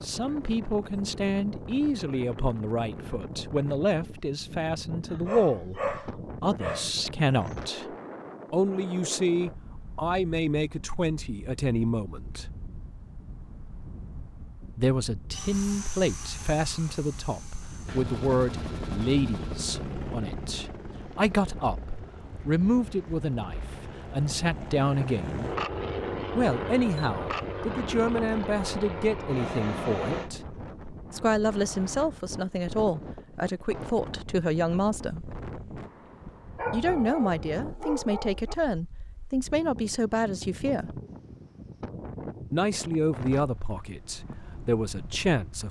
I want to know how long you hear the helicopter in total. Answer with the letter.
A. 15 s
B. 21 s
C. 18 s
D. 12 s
A.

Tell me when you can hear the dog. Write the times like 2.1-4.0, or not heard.
5.0-7.5, 36.5-38.5.